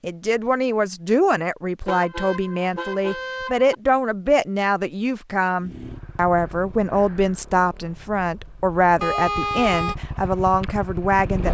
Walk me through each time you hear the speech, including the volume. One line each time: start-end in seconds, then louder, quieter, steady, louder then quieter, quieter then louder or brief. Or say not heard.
0.0-11.5 steady.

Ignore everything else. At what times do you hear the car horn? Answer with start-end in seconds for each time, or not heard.
1.9-3.7, 9.0-9.9.